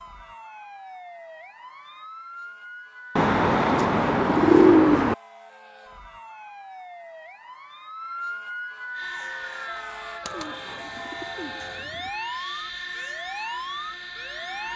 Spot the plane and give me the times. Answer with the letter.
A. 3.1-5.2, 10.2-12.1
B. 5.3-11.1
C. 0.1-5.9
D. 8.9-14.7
D.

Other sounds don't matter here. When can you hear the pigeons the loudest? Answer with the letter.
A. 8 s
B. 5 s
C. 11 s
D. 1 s
B.